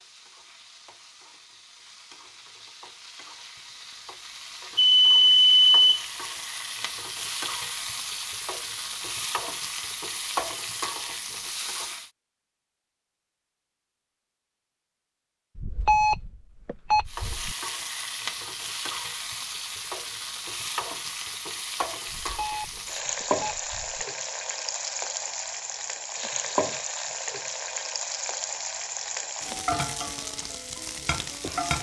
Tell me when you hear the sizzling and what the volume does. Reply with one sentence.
The sizzling can be heard from 0.0 to 12.1 s, getting louder; and from 17.1 to 31.7 s, at a steady volume.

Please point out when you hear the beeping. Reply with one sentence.
The beeping can be heard from 4.8 to 6.0 s, from 15.6 to 17.6 s and from 22.1 to 24.1 s.